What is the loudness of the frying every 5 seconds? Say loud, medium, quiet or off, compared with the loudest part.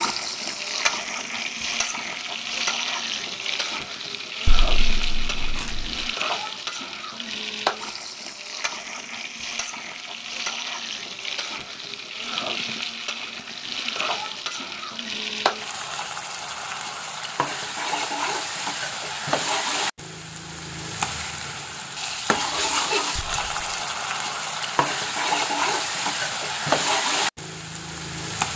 loud, medium, medium, loud, loud, loud.